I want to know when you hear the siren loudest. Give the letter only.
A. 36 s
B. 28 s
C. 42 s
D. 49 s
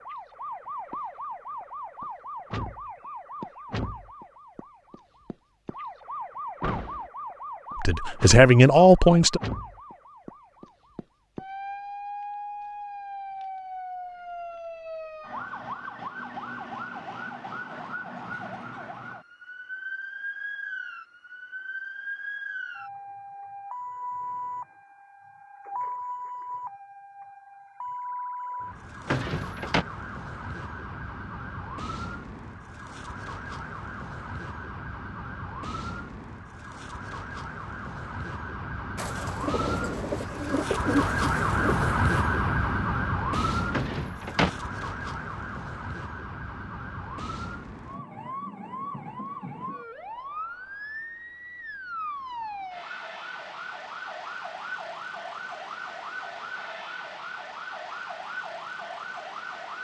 C.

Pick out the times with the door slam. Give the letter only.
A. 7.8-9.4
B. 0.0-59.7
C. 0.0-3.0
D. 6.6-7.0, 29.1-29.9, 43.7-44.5
D.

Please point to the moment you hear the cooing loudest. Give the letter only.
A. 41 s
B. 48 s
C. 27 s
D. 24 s
A.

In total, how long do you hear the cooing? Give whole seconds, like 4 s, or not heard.
3 s.